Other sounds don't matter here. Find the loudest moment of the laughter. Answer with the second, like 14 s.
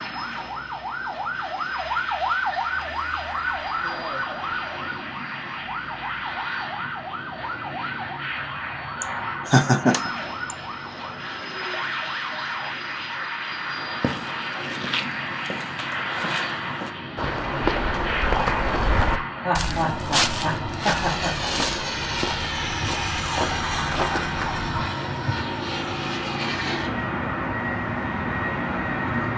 10 s.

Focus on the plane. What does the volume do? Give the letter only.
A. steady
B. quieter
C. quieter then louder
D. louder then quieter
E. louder
E.